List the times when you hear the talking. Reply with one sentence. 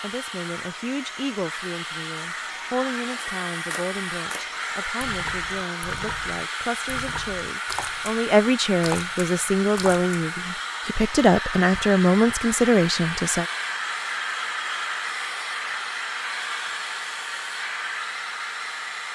The talking can be heard from 0.0 to 13.4 s.